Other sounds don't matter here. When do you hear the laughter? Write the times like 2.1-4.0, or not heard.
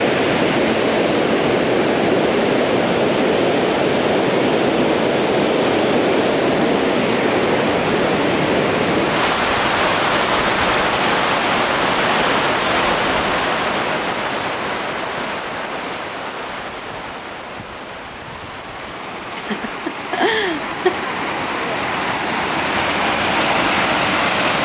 19.4-21.1.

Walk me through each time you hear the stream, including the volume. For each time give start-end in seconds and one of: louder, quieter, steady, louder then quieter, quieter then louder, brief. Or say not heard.
0.0-24.6 quieter then louder.